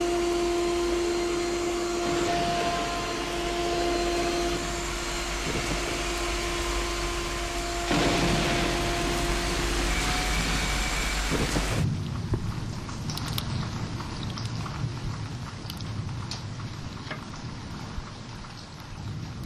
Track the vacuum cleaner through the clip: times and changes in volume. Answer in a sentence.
The vacuum cleaner can be heard from 0.0 to 11.3 s, getting quieter.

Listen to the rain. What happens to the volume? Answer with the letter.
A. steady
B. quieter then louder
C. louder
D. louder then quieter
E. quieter
D.